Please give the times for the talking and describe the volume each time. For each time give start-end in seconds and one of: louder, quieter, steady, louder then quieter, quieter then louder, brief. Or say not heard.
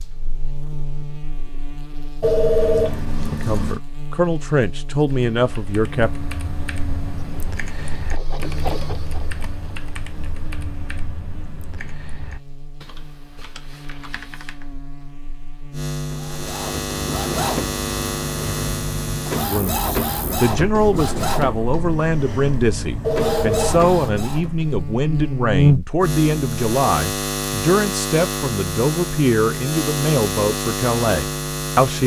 3.4-6.1 brief
19.4-32.0 steady.